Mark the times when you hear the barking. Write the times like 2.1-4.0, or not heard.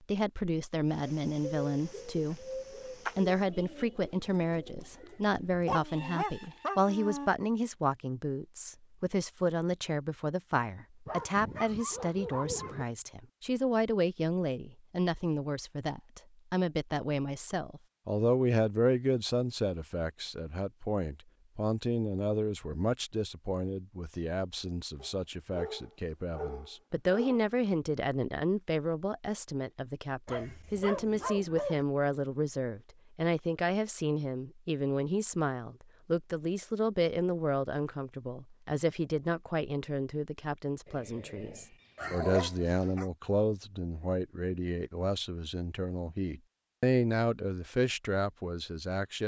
5.7-7.3, 11.1-12.8, 25.0-27.5, 30.2-31.9, 40.9-43.0.